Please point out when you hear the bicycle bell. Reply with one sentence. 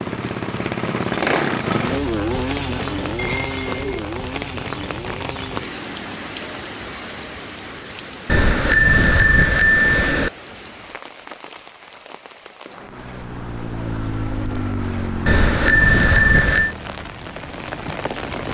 You can hear the bicycle bell from 3.1 to 4.0 s, from 8.2 to 10.3 s and from 15.2 to 16.8 s.